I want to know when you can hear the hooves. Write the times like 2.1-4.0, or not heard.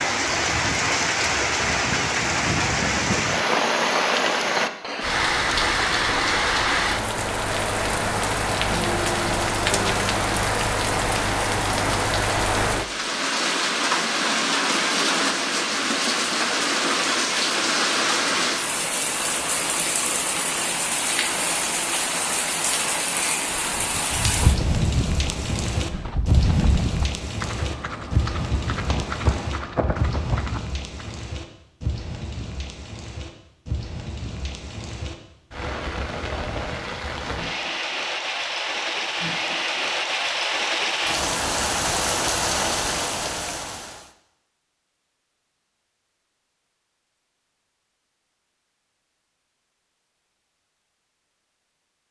23.6-31.2.